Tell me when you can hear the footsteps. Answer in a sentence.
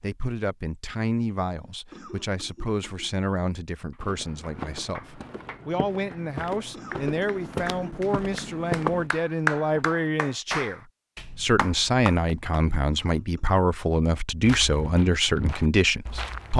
You can hear the footsteps from 4.0 to 9.1 s and from 14.4 to 16.5 s.